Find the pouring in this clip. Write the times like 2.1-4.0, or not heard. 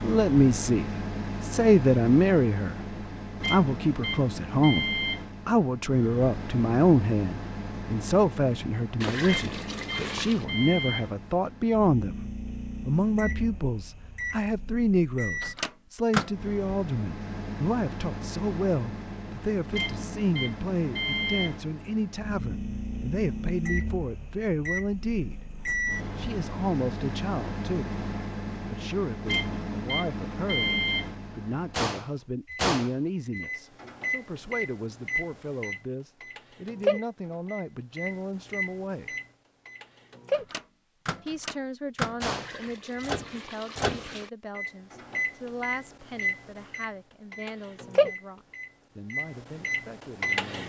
9.0-10.4, 42.3-44.3.